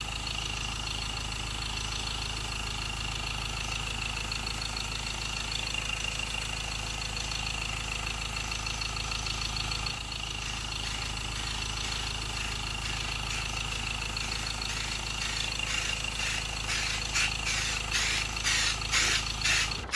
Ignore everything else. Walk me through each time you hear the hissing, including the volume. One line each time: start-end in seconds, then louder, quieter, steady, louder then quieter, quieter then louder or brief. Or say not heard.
10.4-19.9 louder.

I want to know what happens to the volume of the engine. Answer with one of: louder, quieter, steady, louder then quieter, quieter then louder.
steady.